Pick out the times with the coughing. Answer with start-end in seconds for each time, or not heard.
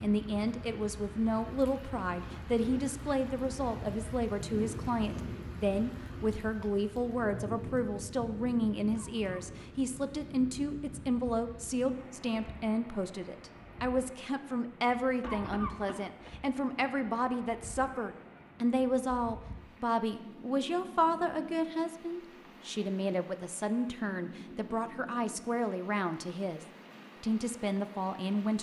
8.9-9.7, 15.2-16.3.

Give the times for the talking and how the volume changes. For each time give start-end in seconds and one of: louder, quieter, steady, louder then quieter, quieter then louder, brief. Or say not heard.
0.0-28.5 steady.